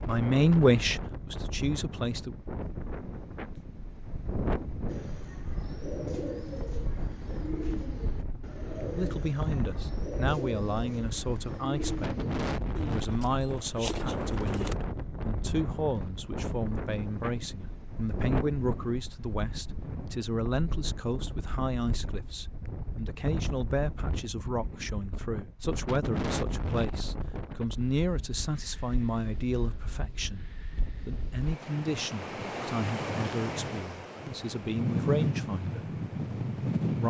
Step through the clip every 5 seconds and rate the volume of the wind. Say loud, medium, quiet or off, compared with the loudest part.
medium, medium, medium, medium, medium, medium, medium, loud.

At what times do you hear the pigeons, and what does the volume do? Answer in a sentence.
The pigeons can be heard from 4.8 to 14.8 s, at a steady volume.